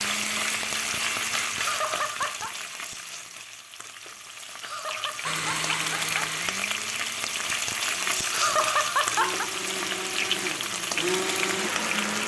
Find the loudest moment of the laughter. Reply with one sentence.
The volume of the laughter peaks at 9 seconds.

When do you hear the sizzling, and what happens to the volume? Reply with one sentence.
The sizzling can be heard from 0.0 to 12.2 s, getting quieter then louder.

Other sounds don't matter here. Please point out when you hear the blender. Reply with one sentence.
You can hear the blender from 0.0 to 3.5 s and from 5.2 to 12.2 s.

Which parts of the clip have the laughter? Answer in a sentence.
You can hear the laughter from 1.6 to 2.5 s, from 4.6 to 6.3 s and from 8.3 to 9.5 s.